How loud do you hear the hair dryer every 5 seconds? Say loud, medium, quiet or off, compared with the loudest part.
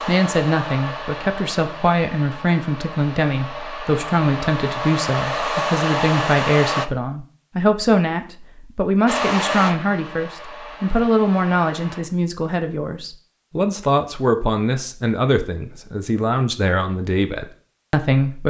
medium, loud, quiet, off.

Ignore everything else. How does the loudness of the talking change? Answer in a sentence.
The volume of the talking stays about the same.